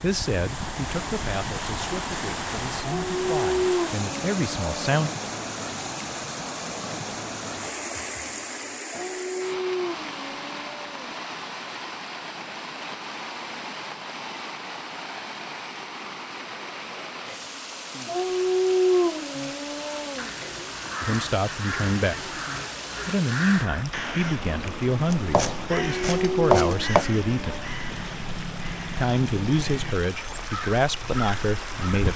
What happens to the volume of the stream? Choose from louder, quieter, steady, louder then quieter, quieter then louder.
quieter.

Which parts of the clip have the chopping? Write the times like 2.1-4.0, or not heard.
25.1-27.1.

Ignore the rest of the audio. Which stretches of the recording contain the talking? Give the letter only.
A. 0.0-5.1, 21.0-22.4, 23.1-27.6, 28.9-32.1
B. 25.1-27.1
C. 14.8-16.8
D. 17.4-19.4
A.